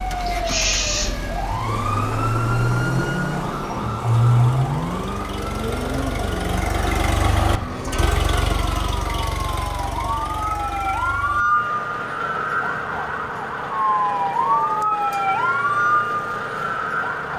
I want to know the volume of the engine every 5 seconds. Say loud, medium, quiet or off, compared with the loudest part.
medium, loud, medium, medium.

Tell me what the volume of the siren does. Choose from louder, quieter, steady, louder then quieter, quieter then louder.
quieter then louder.